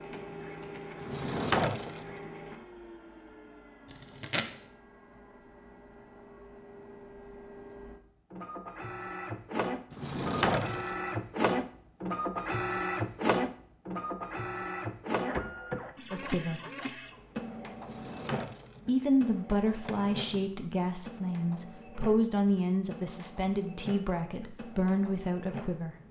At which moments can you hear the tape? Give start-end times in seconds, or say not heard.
3.9-4.7.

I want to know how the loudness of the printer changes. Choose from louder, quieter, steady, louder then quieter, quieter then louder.
louder then quieter.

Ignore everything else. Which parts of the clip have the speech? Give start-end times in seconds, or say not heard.
16.1-16.6, 18.9-25.9.